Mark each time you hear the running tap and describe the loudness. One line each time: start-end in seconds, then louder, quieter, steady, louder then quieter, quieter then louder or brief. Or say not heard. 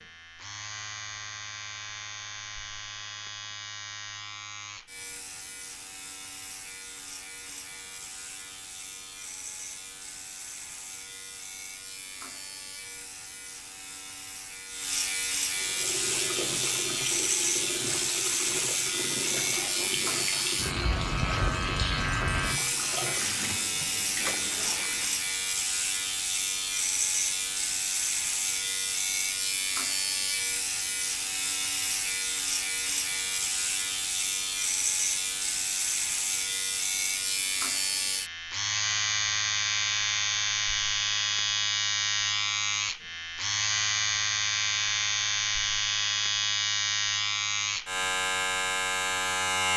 15.6-25.2 steady.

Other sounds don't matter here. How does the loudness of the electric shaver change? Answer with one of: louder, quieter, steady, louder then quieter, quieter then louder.
louder.